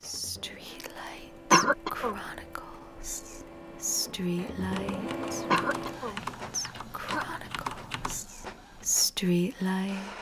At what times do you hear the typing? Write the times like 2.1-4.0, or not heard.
4.6-8.2.